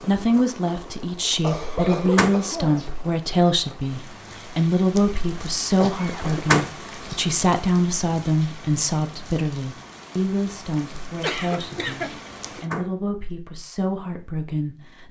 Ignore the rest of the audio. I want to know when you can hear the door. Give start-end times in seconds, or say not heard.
1.9-2.9, 6.2-7.2, 12.4-12.9.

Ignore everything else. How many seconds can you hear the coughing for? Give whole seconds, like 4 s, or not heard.
3 s.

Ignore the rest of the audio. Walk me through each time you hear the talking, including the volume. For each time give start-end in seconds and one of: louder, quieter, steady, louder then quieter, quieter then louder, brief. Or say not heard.
0.0-15.0 quieter.